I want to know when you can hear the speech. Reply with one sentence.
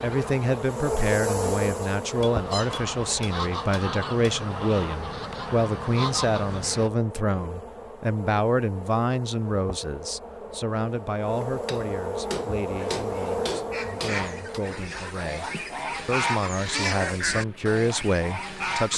The speech can be heard from 0.0 to 18.9 s.